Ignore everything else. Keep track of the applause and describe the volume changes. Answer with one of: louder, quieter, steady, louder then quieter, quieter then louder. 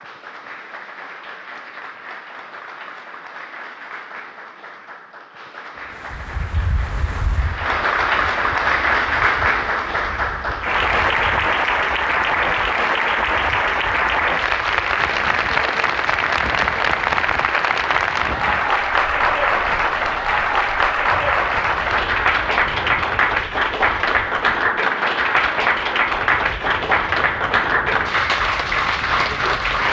louder.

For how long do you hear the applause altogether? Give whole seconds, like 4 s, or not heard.
30 s.